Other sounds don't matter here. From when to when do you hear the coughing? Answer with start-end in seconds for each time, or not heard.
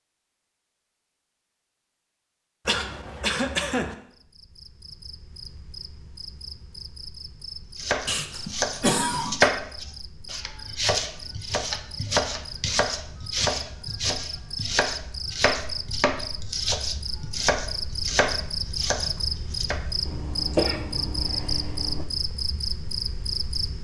2.6-4.0, 8.1-9.5, 20.1-22.1.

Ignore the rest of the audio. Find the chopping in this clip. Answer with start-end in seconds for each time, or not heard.
7.8-19.8.